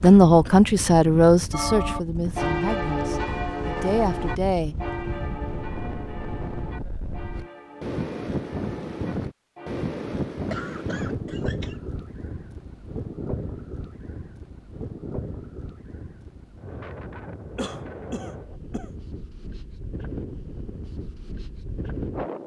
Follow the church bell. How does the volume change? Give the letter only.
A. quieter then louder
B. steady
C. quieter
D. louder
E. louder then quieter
C.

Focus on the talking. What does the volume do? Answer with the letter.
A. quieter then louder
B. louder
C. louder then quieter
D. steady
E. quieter
A.